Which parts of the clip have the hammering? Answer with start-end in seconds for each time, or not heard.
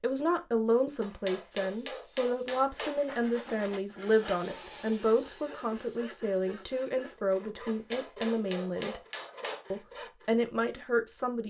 1.0-3.0, 7.7-9.7.